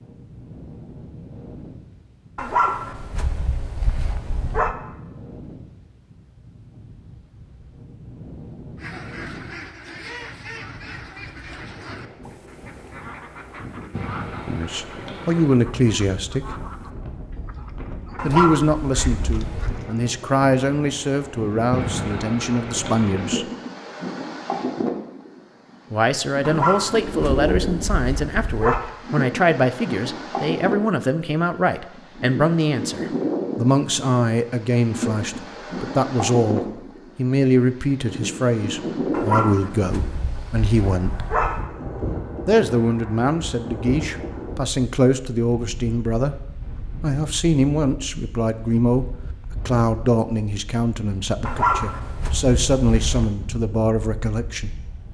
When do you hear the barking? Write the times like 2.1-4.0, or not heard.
2.4-4.8, 18.1-19.8, 26.4-28.9, 39.1-41.6, 51.5-53.4.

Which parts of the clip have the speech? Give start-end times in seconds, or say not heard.
14.4-16.6, 18.2-23.5, 25.9-41.2, 42.5-46.4, 47.0-54.7.